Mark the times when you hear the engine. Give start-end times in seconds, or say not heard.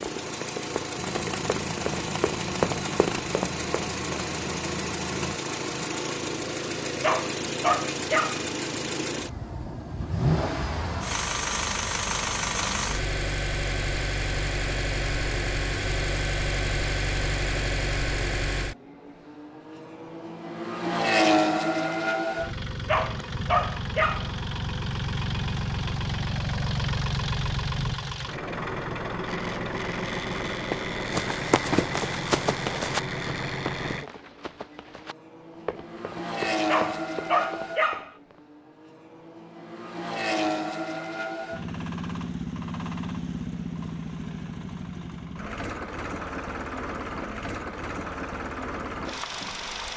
0.0-49.9.